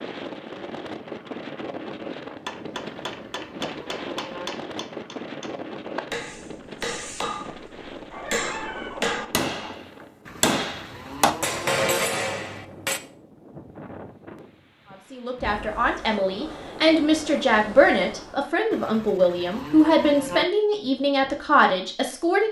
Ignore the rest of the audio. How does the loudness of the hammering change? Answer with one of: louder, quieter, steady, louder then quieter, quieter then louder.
louder.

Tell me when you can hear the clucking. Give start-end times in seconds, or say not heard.
8.1-9.8.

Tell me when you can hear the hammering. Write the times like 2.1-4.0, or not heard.
2.5-13.0.